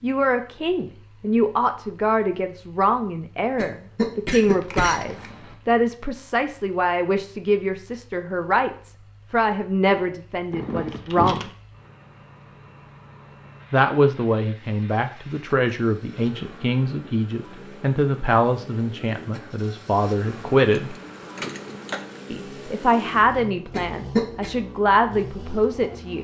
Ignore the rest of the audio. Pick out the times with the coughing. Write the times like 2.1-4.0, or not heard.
3.5-5.5, 23.7-24.5.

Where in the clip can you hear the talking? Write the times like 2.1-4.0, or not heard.
0.0-11.5, 13.7-20.9, 22.3-26.1.